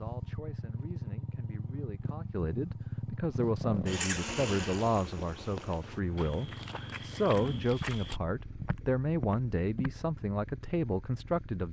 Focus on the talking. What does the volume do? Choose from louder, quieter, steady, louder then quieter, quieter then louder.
louder.